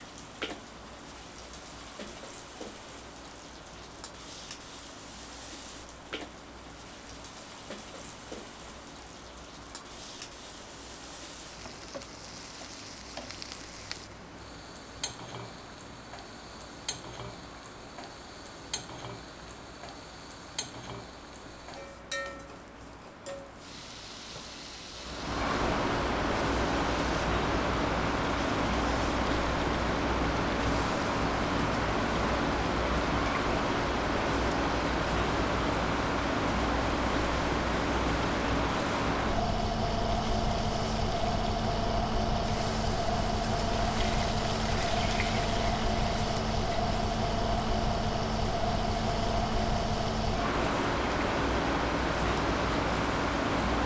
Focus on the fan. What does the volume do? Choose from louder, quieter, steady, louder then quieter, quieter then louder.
louder.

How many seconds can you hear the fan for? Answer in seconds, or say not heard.
54 s.